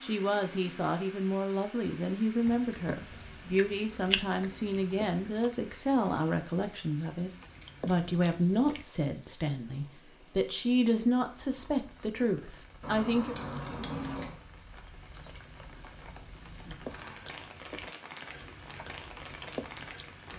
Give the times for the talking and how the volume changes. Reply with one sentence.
The talking can be heard from 0.0 to 13.3 s, at a steady volume.